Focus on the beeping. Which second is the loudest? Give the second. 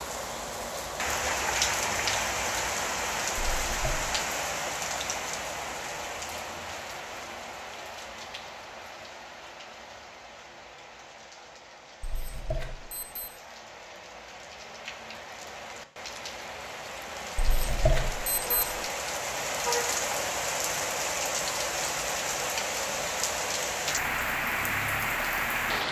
18 s.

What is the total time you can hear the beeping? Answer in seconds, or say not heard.
3 s.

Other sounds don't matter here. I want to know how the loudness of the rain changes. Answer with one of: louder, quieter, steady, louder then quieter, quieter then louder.
quieter then louder.